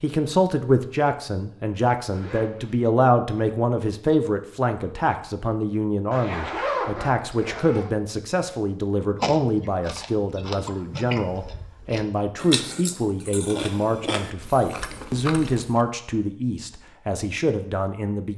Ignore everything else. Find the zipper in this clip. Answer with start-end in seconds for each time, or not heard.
2.1-2.8, 6.1-7.9, 14.8-15.2.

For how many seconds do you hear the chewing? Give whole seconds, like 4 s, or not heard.
7 s.